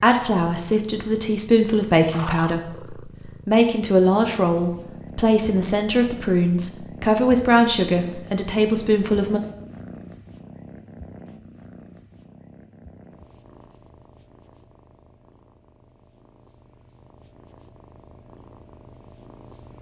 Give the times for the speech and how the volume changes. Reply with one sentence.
The speech can be heard from 0.0 to 9.4 s, at a steady volume.